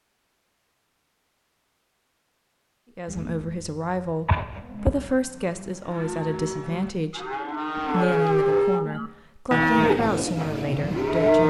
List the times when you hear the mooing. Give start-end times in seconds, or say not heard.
3.0-11.4.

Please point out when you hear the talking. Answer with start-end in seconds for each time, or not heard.
3.0-11.4.